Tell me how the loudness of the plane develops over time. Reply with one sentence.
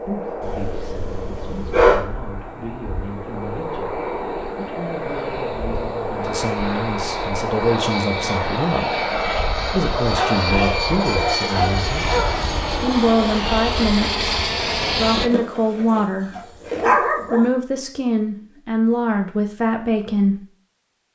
The volume of the plane goes up.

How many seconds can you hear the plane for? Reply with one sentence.
The plane can be heard for 15 seconds in total.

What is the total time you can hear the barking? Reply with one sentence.
You can hear the barking for 6 seconds altogether.